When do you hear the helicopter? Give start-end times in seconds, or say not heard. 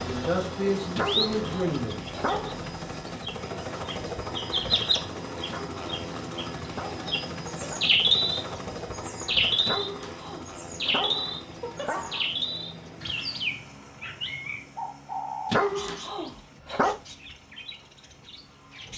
0.0-18.9.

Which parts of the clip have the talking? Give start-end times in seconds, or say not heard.
0.0-2.0.